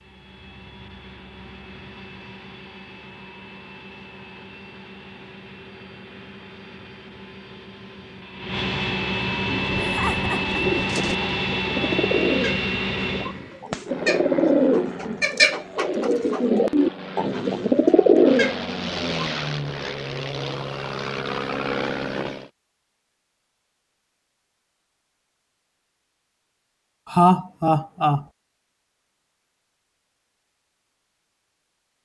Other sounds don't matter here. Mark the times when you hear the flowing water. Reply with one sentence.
The flowing water can't be heard in this clip.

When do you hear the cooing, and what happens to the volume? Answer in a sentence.
You can hear the cooing from 9.6 to 19.4 s, getting louder.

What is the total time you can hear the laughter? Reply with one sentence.
You can hear the laughter for 2 seconds altogether.